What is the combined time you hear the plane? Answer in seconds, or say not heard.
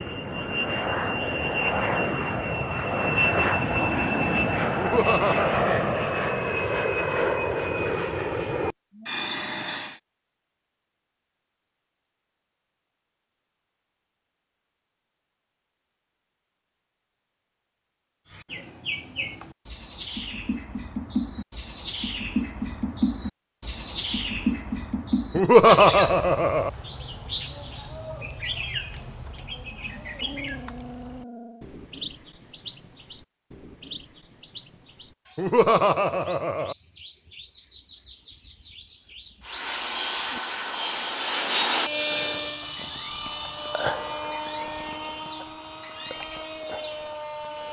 18 s.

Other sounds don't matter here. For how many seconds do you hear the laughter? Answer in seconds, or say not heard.
4 s.